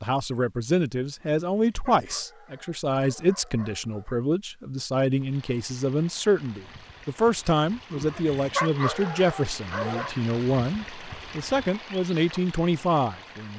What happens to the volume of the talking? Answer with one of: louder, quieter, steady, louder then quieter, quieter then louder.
steady.